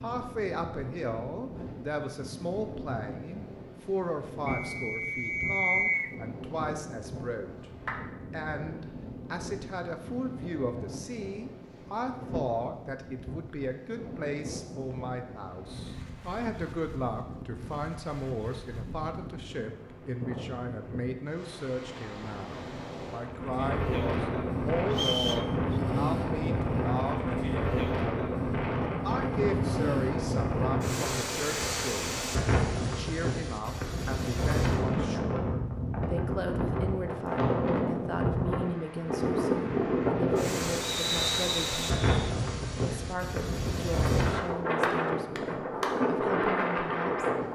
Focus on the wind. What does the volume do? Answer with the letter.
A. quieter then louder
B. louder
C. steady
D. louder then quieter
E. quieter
B.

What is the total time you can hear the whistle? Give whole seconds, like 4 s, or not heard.
4 s.